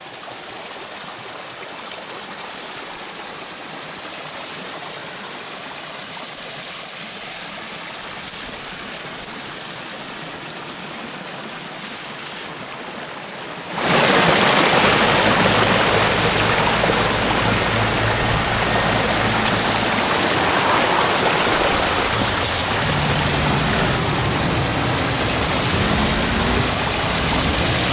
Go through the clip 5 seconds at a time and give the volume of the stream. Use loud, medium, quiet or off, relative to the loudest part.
quiet, quiet, loud, loud, loud, loud.